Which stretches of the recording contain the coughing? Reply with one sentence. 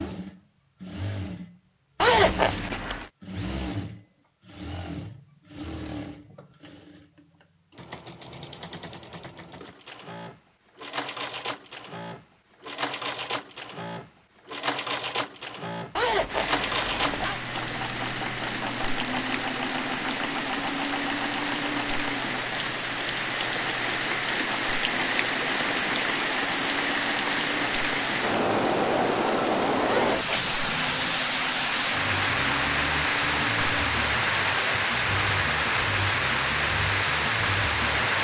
The coughing can't be heard in this clip.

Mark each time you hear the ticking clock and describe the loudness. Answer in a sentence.
The ticking clock can't be heard in this clip.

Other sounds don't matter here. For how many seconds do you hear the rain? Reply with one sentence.
You can hear the rain for 22 seconds altogether.